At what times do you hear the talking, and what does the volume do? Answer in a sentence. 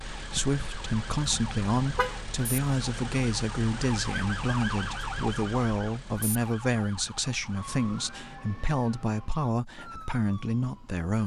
The talking can be heard from 0.0 to 11.2 s, at a steady volume.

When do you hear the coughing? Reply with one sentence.
The coughing can't be heard in this clip.